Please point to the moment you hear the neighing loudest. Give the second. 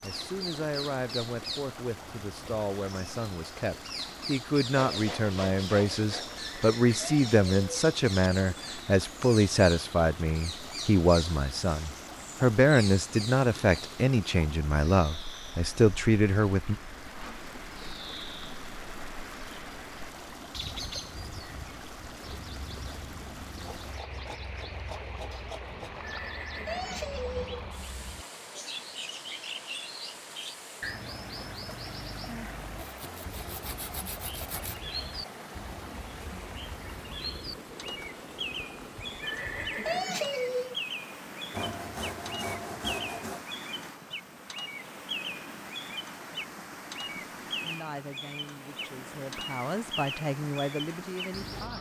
40 s.